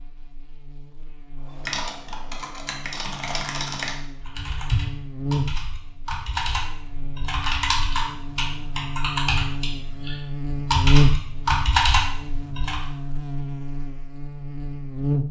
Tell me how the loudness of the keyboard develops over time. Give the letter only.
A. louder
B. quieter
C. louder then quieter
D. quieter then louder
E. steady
A.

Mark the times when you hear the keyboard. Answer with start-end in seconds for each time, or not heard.
1.6-12.8.